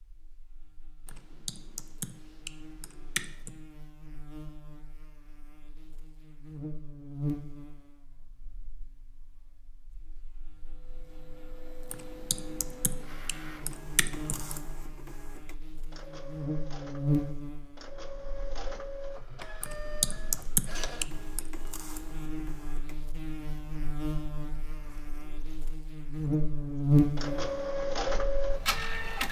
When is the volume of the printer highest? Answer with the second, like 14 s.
28 s.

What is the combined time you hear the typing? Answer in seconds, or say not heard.
7 s.